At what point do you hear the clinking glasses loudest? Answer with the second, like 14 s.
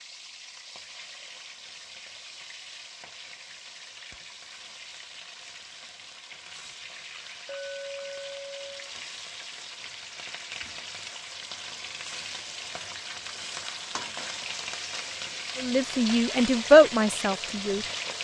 8 s.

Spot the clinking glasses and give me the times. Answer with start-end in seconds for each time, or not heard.
7.5-8.9.